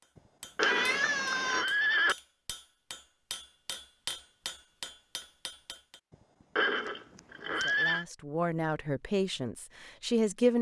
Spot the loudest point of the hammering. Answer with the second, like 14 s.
4 s.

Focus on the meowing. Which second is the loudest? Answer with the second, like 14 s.
1 s.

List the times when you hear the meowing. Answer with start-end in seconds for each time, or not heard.
0.6-1.6, 6.8-7.9.